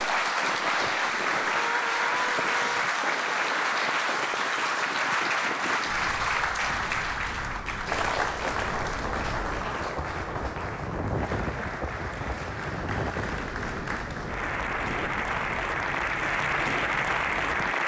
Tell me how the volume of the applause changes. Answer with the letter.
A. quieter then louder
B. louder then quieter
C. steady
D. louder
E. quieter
A.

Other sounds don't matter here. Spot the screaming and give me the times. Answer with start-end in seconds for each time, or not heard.
1.5-2.9.